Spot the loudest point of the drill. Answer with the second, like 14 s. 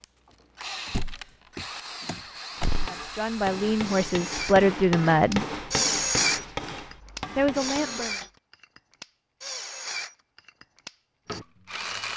6 s.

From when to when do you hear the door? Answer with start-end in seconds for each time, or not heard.
0.9-2.9.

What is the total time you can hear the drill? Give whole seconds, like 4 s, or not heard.
12 s.